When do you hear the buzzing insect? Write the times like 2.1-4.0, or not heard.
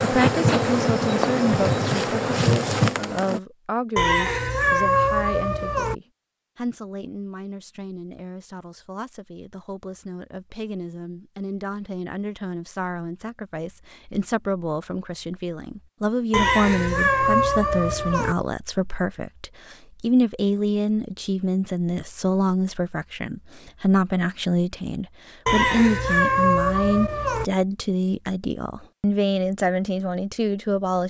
0.0-3.4.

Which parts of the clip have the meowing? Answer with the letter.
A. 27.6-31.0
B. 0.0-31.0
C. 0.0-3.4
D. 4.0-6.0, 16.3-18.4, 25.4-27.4
D.